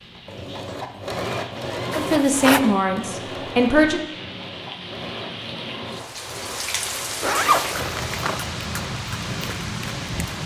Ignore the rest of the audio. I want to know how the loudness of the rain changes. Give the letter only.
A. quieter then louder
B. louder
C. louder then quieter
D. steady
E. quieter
B.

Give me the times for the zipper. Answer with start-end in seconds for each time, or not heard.
1.9-2.6, 7.2-8.4.